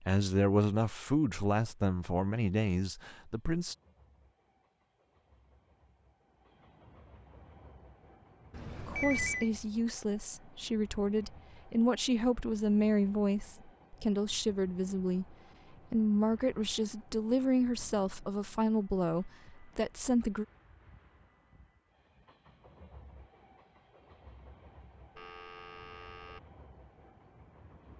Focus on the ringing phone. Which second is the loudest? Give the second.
9 s.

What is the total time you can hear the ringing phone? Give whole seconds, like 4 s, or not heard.
2 s.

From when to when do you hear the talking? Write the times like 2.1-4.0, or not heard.
0.0-3.8, 8.8-20.4.